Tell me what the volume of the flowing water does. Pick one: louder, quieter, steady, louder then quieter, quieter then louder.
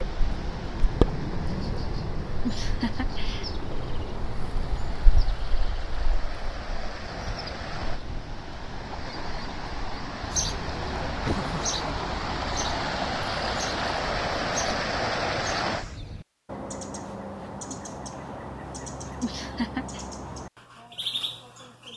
louder.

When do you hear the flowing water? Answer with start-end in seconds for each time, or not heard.
0.0-16.0.